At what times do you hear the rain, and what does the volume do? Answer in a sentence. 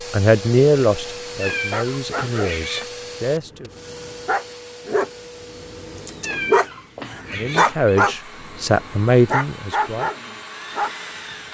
You can't hear the rain here.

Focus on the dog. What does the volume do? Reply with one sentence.
The loudness of the dog goes up.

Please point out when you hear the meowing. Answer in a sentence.
The meowing can be heard from 1.4 to 2.9 s and from 6.2 to 8.1 s.